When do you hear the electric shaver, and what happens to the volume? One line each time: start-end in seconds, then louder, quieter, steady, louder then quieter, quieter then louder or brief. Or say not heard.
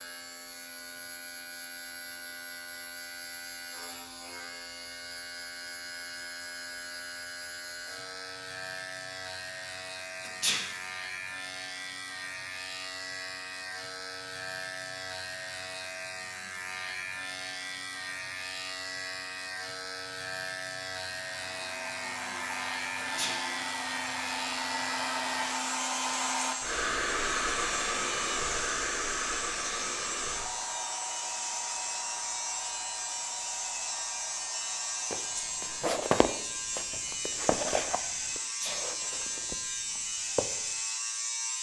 0.0-41.5 louder.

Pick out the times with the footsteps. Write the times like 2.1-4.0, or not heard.
35.1-40.8.